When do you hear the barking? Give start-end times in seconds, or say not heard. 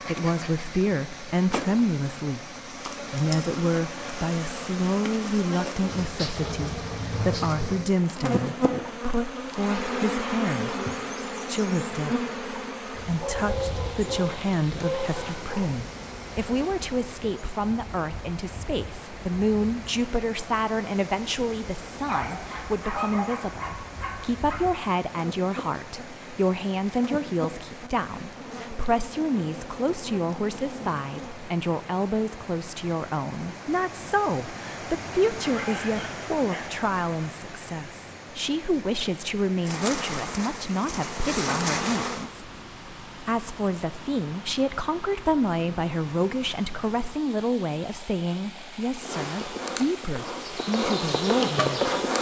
13.2-15.7, 21.9-24.6, 35.4-36.8.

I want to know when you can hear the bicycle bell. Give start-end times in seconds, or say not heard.
not heard.